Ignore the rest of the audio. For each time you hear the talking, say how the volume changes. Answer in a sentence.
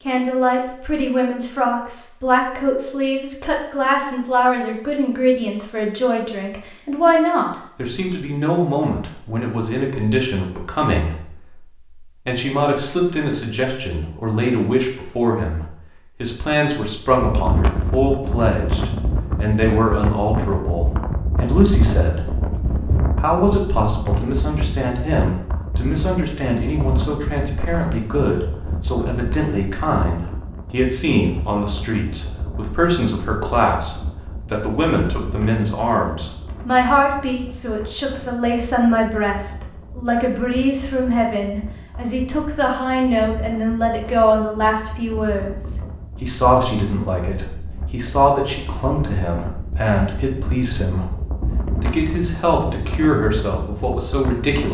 The talking can be heard from 0.1 to 54.6 s, at a steady volume.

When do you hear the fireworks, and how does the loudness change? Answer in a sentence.
You can't hear the fireworks here.